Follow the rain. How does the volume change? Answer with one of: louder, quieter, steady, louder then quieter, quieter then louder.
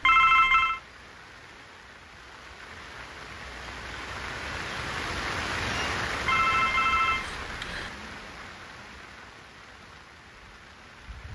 louder then quieter.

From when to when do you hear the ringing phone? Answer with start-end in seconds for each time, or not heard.
0.1-0.8, 6.2-7.9.